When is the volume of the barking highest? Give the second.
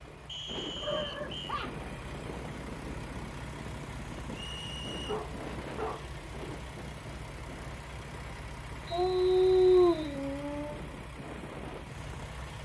10 s.